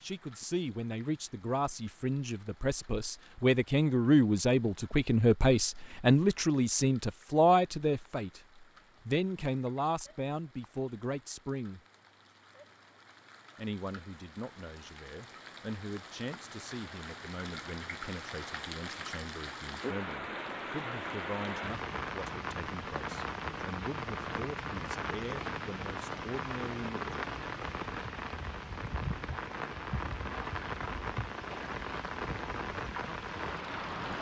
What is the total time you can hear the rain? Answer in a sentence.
You can hear the rain for 34 seconds altogether.